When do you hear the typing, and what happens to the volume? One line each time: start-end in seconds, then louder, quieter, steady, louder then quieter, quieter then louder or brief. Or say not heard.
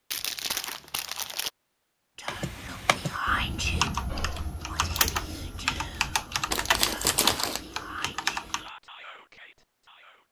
2.2-8.7 louder.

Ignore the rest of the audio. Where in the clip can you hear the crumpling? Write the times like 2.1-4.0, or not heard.
0.1-1.5, 6.5-7.6.